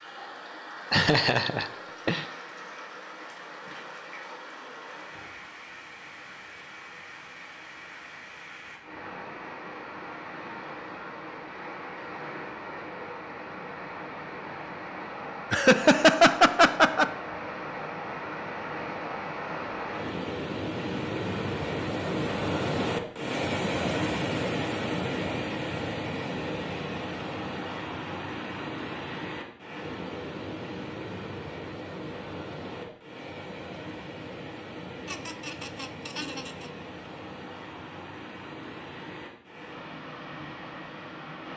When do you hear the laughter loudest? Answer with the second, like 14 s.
16 s.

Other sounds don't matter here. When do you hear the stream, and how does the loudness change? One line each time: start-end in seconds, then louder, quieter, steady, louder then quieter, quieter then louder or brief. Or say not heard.
0.0-41.5 louder then quieter.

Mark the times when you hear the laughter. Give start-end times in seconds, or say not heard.
0.9-2.2, 15.5-17.1, 35.0-36.7.